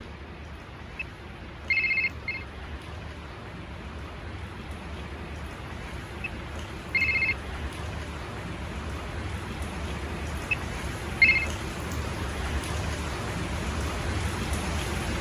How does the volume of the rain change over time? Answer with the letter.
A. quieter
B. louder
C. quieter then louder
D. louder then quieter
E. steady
B.